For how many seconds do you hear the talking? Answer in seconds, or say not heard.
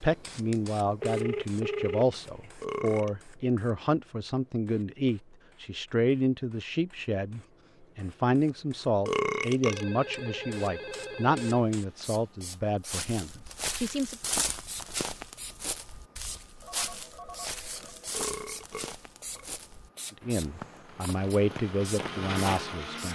17 s.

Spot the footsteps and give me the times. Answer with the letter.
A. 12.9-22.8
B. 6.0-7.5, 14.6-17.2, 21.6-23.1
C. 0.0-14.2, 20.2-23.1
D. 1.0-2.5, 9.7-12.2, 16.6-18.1
A.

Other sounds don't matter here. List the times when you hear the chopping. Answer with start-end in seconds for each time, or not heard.
not heard.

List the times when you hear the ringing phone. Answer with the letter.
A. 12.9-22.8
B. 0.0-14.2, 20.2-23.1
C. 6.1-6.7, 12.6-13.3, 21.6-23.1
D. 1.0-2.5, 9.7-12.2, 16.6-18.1
D.